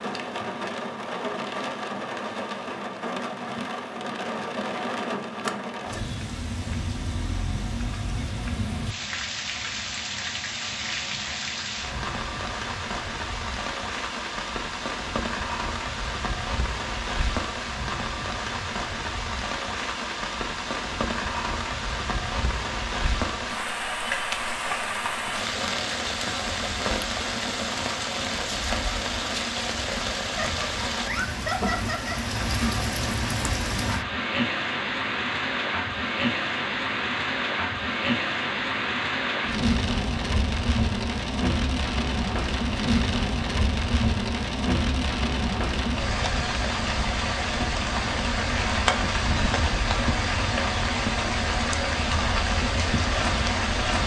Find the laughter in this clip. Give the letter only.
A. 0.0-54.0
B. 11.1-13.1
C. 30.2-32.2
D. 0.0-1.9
C.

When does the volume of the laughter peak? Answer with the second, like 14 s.
32 s.